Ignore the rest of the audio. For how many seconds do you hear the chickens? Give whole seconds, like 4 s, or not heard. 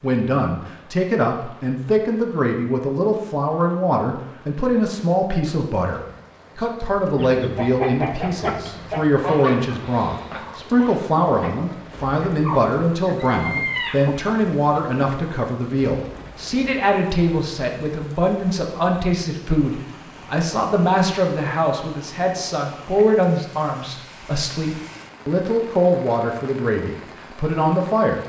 8 s.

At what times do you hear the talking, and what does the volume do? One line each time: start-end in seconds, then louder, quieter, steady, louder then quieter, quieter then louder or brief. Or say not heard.
0.0-28.2 steady.